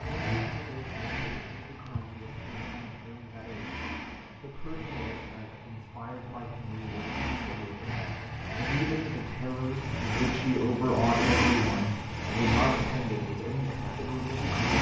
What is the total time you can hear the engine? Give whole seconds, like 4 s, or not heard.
15 s.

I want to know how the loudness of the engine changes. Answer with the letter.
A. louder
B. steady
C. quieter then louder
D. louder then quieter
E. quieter
A.